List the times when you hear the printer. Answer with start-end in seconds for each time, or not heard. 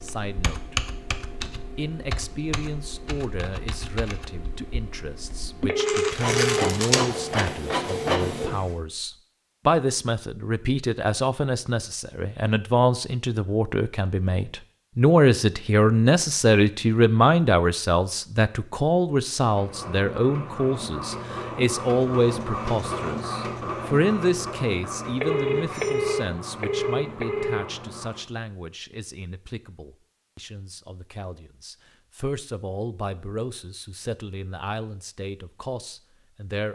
6.0-8.8, 19.4-28.2.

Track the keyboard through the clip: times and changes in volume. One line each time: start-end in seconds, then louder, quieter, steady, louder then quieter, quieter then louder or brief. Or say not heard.
0.0-6.2 quieter.